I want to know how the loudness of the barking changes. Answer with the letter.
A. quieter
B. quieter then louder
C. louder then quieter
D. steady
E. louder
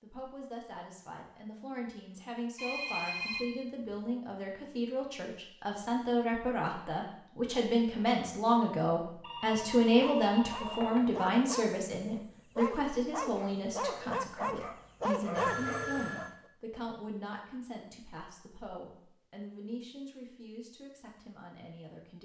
E.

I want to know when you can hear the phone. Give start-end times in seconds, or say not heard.
2.5-4.0, 9.2-11.1, 15.3-16.3.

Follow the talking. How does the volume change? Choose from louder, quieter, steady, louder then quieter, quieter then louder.
louder then quieter.